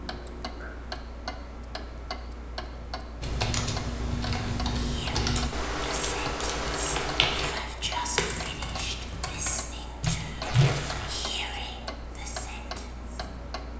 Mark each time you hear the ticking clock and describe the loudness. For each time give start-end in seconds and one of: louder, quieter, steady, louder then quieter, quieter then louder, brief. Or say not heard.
0.0-13.7 steady.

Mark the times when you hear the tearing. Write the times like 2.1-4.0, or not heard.
10.4-11.2.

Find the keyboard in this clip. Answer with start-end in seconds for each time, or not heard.
3.2-10.7.